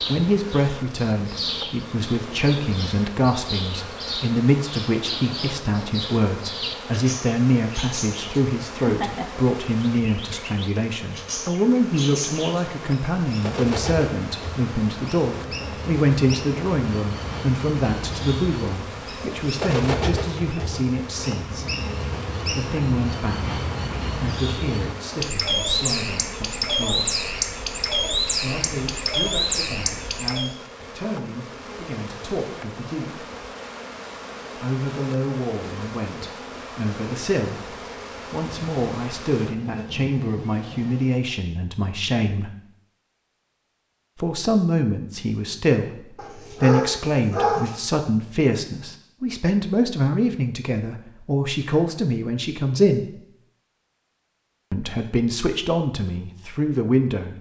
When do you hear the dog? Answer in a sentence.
The dog can be heard from 46.1 to 47.8 s.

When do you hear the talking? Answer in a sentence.
The talking can be heard from 0.1 to 21.6 s, from 22.4 to 27.1 s, from 28.4 to 33.2 s, from 34.5 to 42.5 s, from 44.2 to 53.1 s and from 54.7 to 57.3 s.